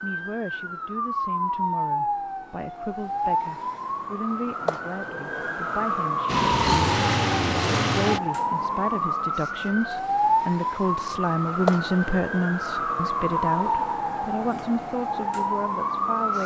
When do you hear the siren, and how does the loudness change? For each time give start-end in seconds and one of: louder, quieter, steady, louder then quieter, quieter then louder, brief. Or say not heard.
0.0-16.4 steady.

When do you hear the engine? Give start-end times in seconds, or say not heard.
6.2-8.2.